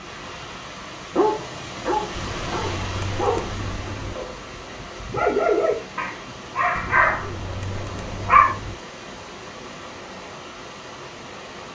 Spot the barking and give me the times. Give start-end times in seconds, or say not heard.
1.1-8.5.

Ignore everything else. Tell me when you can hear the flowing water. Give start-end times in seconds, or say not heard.
0.0-11.6.